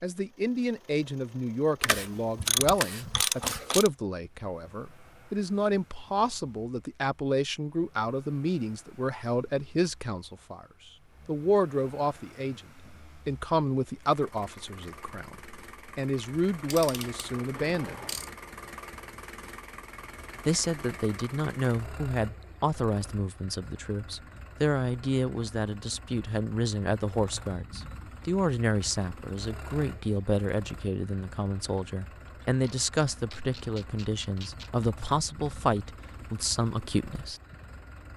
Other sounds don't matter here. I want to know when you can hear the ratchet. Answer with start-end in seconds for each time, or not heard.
1.8-3.9, 16.7-18.3, 32.2-34.9.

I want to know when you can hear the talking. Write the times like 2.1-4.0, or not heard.
0.0-10.7, 11.2-17.9, 20.4-37.4.